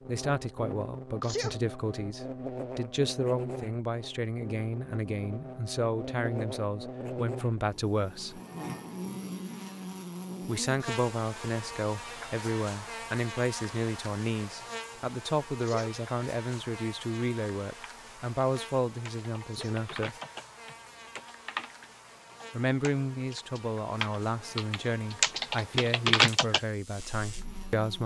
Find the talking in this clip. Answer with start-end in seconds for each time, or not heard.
0.1-8.4, 10.4-20.1, 22.5-28.0.